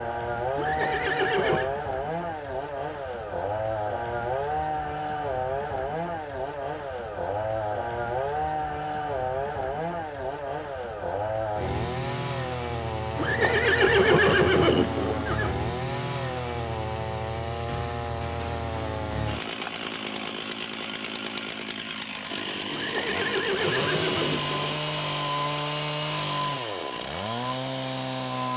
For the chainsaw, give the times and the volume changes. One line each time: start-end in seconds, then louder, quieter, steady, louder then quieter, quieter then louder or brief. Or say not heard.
0.0-28.5 steady.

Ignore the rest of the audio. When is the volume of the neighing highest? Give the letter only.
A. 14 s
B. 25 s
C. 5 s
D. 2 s
A.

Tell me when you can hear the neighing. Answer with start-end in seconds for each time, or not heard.
0.6-1.7, 13.2-15.5, 22.7-24.8.